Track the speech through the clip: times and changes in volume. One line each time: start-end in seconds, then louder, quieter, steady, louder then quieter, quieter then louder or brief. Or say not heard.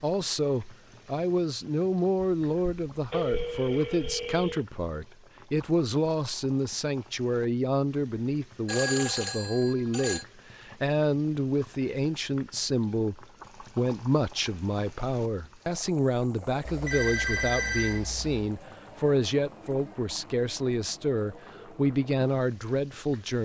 0.0-23.4 steady.